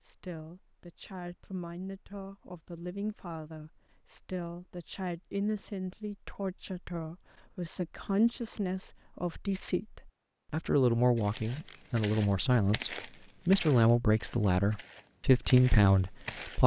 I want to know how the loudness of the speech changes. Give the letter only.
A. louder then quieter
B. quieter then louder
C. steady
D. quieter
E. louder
E.